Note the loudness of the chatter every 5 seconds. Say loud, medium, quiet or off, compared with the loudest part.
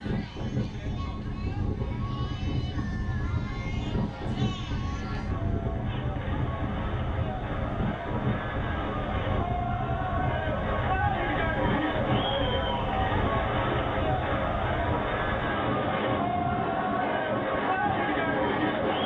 quiet, medium, loud, loud.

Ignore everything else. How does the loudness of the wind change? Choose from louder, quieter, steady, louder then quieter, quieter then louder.
steady.